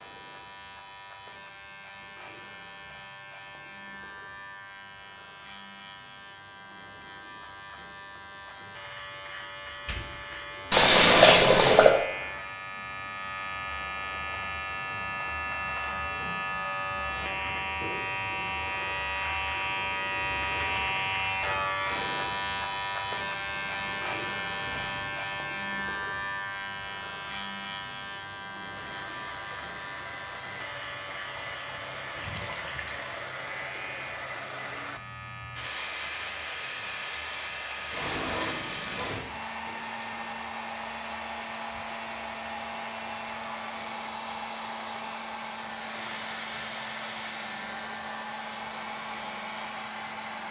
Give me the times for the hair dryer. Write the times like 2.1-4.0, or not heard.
28.8-50.4.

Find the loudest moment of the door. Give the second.
38 s.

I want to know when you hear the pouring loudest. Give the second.
11 s.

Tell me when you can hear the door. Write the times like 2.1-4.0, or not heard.
9.7-10.8, 23.4-25.2, 37.9-39.3.